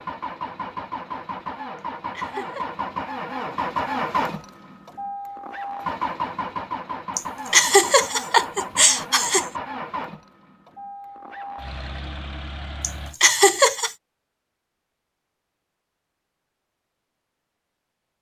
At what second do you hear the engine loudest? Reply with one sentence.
The volume of the engine peaks at 4 seconds.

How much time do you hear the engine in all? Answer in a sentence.
The engine can be heard for 13 seconds in total.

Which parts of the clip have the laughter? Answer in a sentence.
The laughter can be heard from 1.8 to 2.6 s, from 7.2 to 9.4 s and from 12.8 to 13.9 s.